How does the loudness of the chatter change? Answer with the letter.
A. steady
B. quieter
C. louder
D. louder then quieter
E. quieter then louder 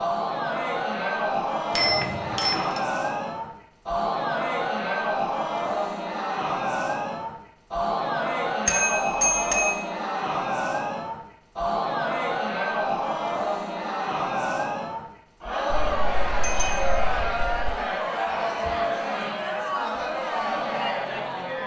A.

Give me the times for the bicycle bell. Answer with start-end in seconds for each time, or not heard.
1.8-2.8, 8.7-9.8, 15.7-17.7.